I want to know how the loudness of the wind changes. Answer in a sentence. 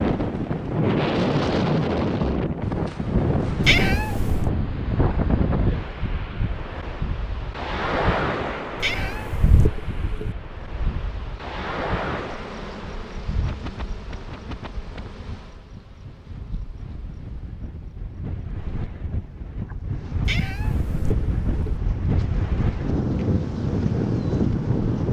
The loudness of the wind goes down, then up.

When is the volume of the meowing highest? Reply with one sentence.
The volume of the meowing peaks at 4 seconds.